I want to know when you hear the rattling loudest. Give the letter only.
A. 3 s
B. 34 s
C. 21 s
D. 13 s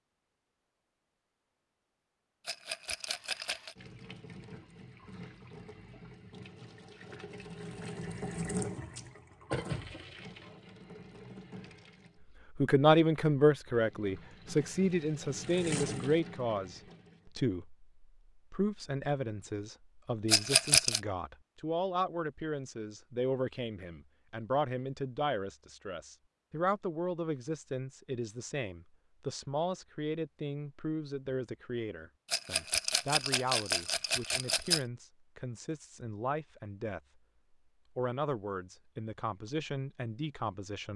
C.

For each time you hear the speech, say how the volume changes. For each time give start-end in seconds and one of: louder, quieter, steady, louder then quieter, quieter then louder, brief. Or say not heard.
12.6-37.0 quieter
38.0-40.9 brief.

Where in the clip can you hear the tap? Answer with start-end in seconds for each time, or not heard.
3.0-12.2, 13.7-17.3.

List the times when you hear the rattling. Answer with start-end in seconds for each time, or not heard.
2.5-3.8, 20.2-21.0, 32.3-34.9.